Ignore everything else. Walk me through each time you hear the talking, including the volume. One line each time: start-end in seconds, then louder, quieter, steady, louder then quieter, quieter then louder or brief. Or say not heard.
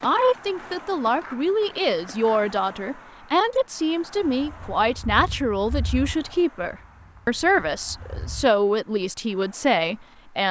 0.0-10.4 steady.